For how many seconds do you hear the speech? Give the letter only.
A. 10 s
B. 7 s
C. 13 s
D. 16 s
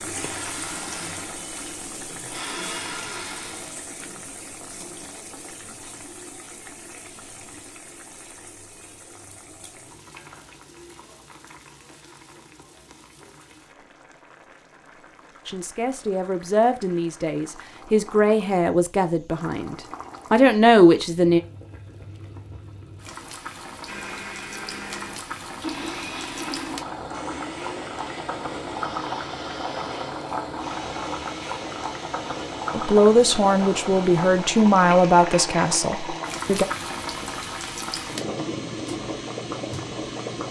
A.